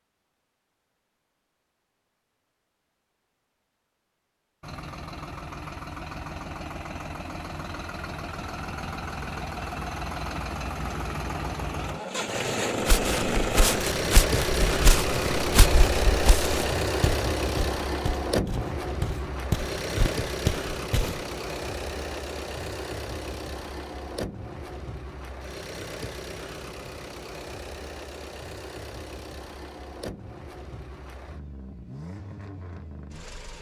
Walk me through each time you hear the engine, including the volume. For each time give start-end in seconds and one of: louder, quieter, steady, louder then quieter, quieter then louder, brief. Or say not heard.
4.6-33.5 louder then quieter.